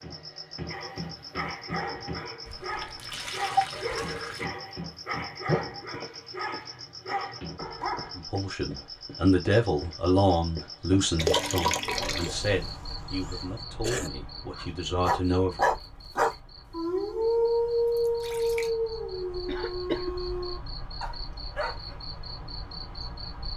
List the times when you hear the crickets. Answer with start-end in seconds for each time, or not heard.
0.0-23.5.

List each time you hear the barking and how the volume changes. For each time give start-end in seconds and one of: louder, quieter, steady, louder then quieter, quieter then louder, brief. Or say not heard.
0.7-8.2 steady
14.6-22.2 quieter.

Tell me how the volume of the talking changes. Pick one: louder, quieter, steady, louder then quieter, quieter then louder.
quieter.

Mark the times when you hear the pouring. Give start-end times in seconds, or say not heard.
2.5-4.5, 11.2-12.3, 16.6-18.8.